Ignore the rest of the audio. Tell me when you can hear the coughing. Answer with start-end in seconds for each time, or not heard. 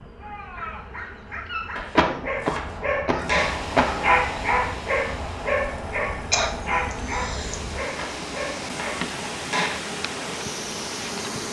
1.9-4.1, 6.3-7.6.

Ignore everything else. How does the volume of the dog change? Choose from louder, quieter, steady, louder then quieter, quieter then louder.
louder then quieter.